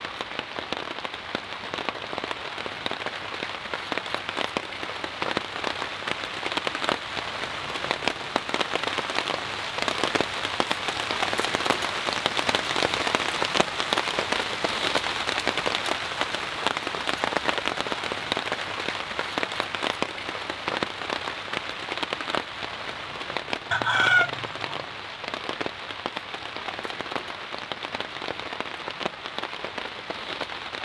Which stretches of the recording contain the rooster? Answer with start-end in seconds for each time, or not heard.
23.7-24.8.